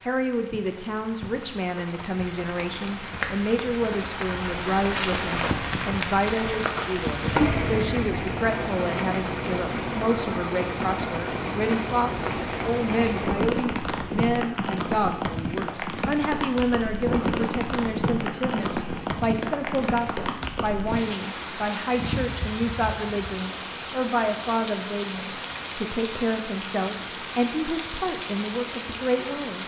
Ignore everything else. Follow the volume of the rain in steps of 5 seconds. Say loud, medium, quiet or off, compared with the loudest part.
medium, loud, loud, loud, medium, medium.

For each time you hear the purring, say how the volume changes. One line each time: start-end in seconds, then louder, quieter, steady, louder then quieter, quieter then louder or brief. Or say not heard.
not heard.